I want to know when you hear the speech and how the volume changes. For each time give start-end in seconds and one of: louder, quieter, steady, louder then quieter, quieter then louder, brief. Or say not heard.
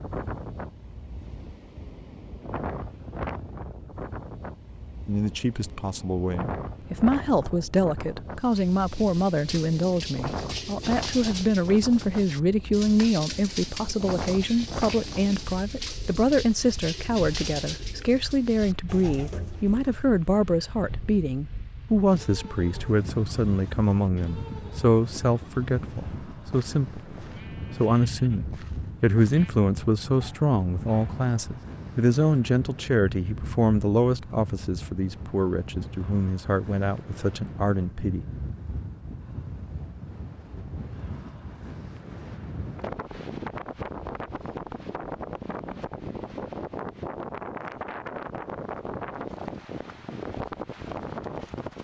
5.0-38.2 steady.